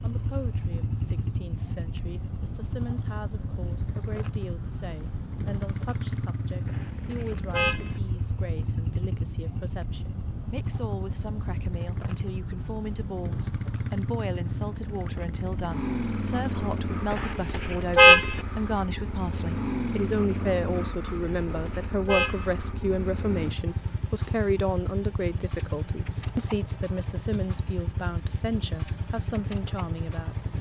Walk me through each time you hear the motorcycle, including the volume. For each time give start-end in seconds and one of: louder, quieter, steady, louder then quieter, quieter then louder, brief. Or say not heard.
0.0-30.5 steady.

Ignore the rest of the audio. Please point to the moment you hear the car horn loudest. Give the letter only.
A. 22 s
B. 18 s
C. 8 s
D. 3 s
B.